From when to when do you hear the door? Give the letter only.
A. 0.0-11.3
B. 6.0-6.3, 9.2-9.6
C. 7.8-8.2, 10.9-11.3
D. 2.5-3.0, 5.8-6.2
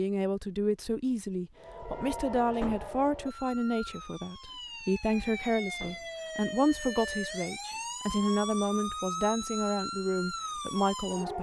D.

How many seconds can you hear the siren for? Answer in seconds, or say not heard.
10 s.